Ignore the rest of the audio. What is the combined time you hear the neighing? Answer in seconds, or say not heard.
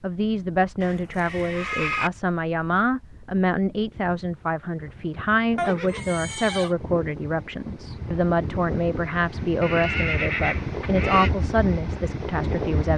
4 s.